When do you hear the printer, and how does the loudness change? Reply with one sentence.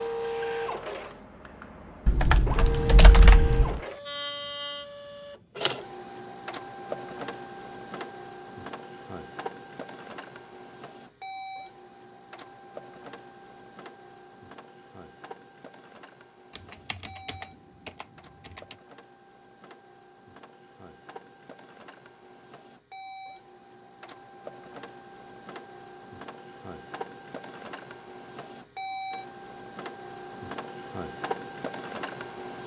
The printer can be heard from 0.0 to 32.6 s, getting quieter then louder.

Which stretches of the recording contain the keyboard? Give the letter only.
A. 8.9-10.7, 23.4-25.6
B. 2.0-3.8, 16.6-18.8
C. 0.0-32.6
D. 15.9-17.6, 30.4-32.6
B.